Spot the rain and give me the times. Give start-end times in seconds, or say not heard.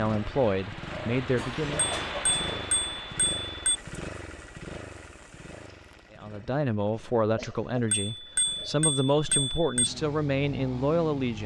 0.1-6.3.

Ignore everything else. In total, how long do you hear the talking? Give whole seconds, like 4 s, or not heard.
7 s.